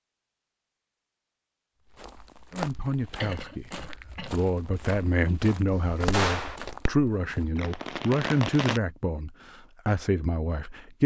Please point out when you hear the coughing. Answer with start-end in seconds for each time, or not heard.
3.0-4.4.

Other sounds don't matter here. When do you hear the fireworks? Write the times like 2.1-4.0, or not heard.
5.7-8.8.